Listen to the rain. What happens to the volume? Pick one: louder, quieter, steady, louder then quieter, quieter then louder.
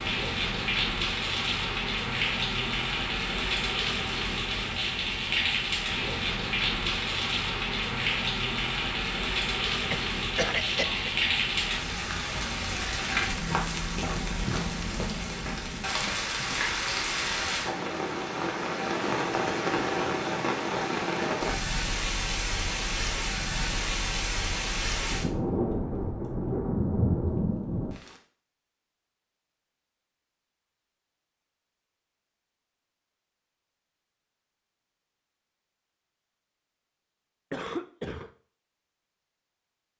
steady.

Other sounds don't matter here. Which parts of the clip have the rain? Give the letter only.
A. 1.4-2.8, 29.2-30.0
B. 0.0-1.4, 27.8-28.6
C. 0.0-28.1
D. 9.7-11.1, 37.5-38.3
C.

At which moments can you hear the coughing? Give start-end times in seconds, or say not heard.
9.7-11.1, 37.5-38.3.